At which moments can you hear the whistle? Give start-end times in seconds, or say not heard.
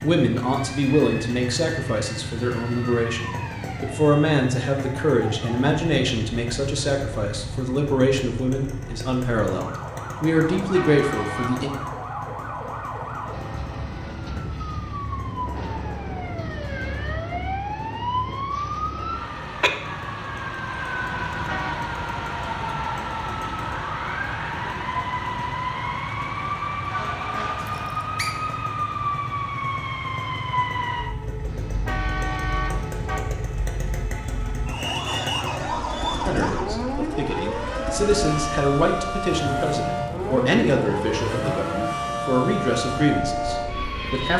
27.6-28.4.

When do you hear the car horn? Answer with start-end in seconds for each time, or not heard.
10.6-11.6, 21.1-21.8, 31.4-33.2.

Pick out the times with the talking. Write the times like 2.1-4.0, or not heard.
0.0-11.7, 36.2-44.3.